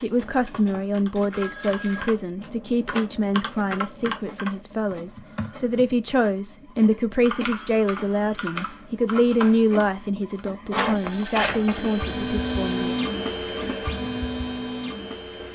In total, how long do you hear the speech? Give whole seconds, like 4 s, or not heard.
13 s.